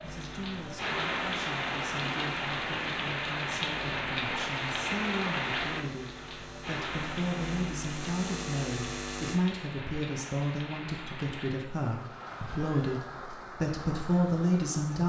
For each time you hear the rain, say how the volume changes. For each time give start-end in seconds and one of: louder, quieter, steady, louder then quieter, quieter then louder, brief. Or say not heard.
0.0-15.0 quieter.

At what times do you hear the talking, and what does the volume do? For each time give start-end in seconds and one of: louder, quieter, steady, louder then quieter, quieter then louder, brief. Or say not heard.
0.0-15.0 louder.